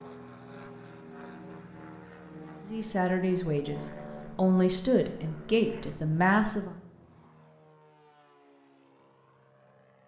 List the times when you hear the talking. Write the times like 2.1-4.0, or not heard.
2.6-6.8.